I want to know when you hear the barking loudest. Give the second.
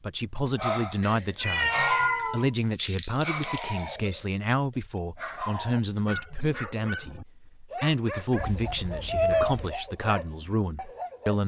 2 s.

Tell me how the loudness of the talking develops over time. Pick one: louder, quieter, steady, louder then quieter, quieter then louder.
steady.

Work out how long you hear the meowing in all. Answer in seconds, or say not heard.
3 s.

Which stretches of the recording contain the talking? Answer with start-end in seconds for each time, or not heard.
0.0-11.4.